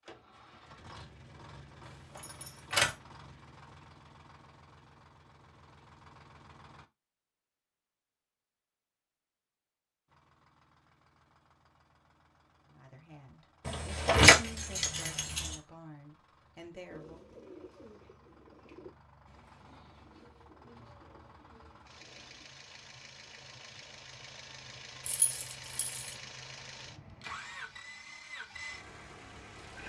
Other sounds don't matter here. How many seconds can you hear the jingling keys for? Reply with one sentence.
The jingling keys can be heard for 4 seconds in total.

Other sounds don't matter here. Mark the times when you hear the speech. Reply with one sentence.
You can hear the speech from 12.7 to 17.2 s.